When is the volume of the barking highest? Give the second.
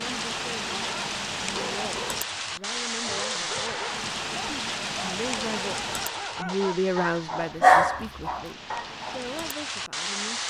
8 s.